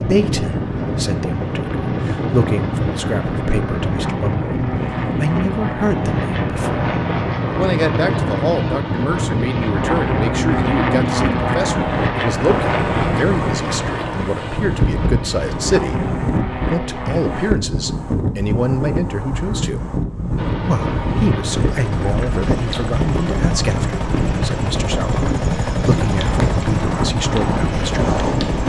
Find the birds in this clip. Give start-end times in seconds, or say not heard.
not heard.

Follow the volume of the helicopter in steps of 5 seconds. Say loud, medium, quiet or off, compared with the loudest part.
medium, loud, loud, medium, loud, loud.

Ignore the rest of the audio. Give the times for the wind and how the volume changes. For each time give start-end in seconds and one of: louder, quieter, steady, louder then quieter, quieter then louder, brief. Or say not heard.
0.0-28.6 steady.